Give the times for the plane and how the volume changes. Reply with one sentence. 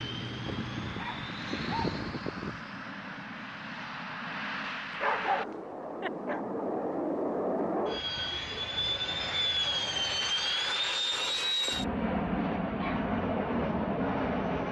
The plane can be heard from 0.0 to 14.6 s, getting louder.